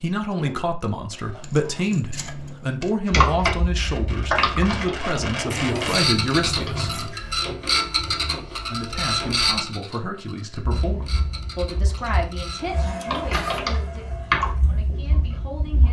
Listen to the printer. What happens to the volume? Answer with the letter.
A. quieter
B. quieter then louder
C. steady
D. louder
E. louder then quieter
E.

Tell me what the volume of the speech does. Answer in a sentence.
The volume of the speech goes down.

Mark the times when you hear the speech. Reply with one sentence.
You can hear the speech from 0.0 to 7.0 s and from 8.7 to 15.8 s.